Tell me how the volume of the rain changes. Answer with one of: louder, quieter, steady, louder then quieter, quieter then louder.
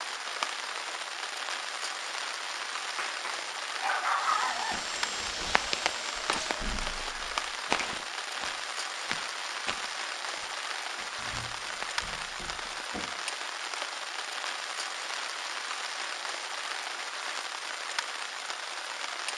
steady.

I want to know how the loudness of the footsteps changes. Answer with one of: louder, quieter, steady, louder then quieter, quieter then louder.
quieter then louder.